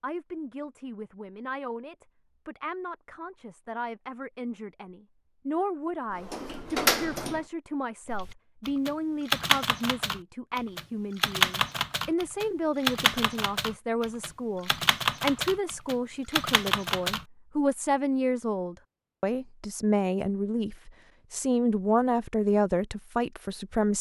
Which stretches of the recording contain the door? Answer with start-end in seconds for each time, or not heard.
6.1-7.5.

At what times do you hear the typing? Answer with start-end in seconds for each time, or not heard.
8.1-17.2.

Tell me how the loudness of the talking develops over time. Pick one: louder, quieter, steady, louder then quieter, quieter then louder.
louder.